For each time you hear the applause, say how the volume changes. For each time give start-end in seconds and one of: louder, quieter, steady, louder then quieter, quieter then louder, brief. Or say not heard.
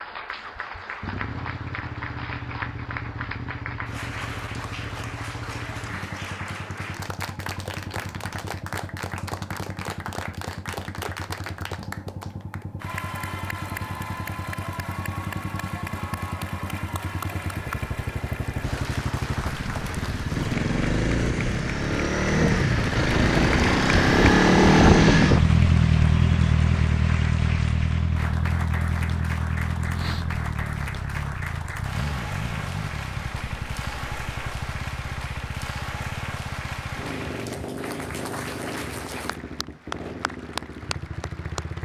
0.0-41.7 steady.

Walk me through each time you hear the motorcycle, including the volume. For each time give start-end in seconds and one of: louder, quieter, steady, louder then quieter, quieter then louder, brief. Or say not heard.
0.0-41.7 louder then quieter.